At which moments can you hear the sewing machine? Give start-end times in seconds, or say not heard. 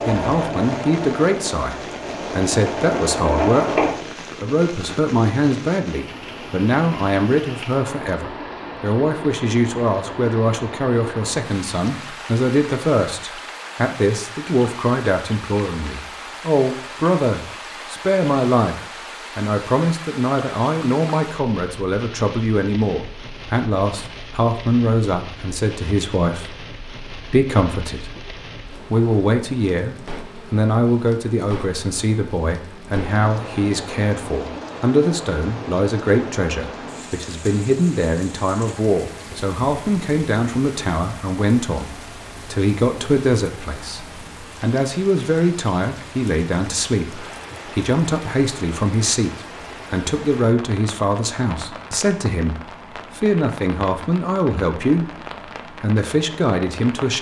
0.0-4.0.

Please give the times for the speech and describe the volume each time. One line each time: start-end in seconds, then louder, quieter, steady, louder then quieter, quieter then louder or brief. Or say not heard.
0.1-18.8 steady
19.4-57.1 steady.